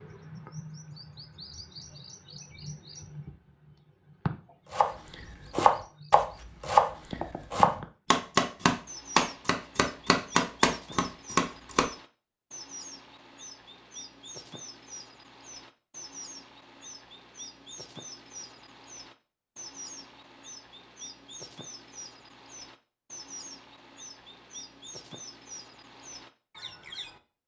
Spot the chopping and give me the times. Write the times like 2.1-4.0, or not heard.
4.7-11.8.